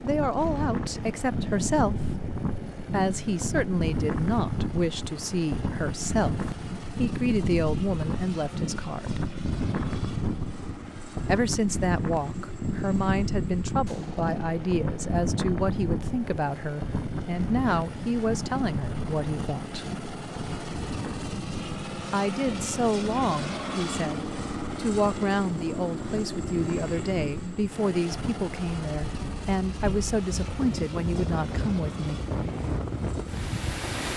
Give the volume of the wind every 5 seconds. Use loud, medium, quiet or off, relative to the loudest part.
loud, loud, loud, loud, medium, medium, loud.